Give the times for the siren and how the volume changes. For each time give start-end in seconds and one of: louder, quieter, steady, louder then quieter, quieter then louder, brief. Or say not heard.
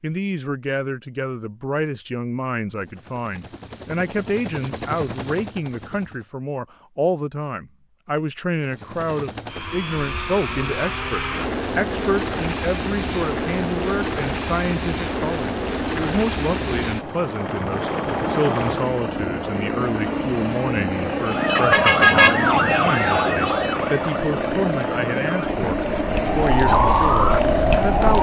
21.2-28.1 quieter then louder.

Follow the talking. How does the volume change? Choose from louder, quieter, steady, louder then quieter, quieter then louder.
steady.